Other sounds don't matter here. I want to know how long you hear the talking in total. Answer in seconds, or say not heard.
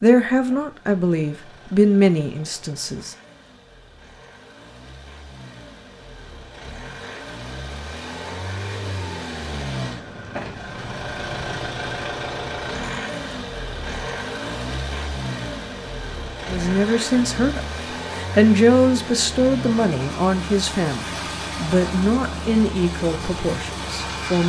11 s.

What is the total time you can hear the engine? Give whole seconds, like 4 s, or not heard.
24 s.